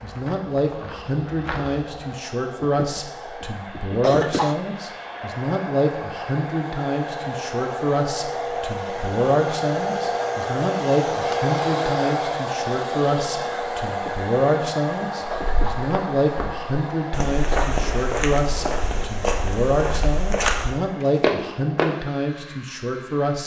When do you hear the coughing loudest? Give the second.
4 s.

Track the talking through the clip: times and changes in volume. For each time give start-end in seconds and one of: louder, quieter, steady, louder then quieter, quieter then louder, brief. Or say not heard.
0.0-23.4 steady.